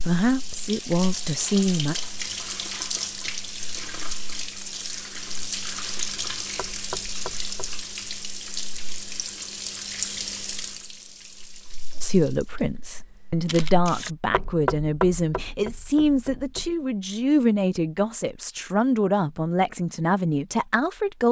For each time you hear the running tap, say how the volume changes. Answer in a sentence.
You can hear the running tap from 0.0 to 14.1 s, getting quieter.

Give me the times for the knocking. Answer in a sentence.
You can hear the knocking from 6.5 to 7.8 s and from 14.3 to 16.8 s.